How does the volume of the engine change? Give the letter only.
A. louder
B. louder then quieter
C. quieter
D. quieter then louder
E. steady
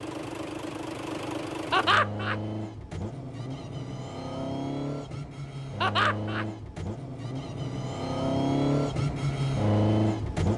A.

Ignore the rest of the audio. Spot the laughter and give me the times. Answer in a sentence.
The laughter can be heard from 1.7 to 2.4 s and from 5.8 to 6.5 s.